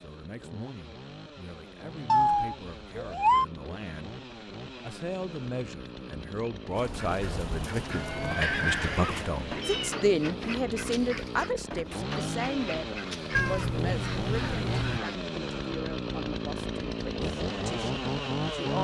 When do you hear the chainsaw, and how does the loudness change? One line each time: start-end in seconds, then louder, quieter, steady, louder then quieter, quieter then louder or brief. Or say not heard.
0.0-18.7 louder.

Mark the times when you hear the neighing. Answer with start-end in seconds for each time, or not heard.
7.8-9.2.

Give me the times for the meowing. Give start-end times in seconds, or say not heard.
2.0-3.5, 8.4-10.0, 13.3-15.0.